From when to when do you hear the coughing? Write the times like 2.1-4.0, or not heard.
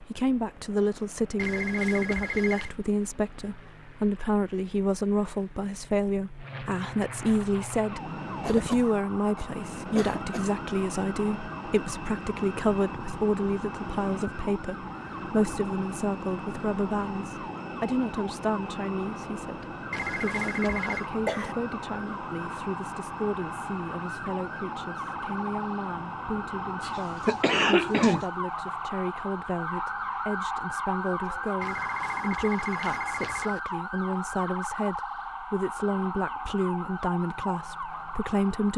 8.4-10.5, 21.1-21.6, 26.8-28.2.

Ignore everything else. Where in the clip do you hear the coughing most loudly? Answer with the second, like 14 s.
28 s.